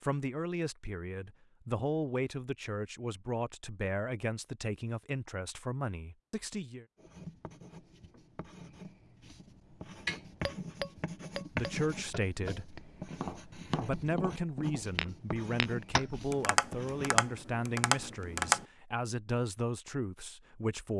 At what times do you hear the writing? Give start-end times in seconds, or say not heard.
7.0-17.2.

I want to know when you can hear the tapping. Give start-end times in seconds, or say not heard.
10.1-18.6.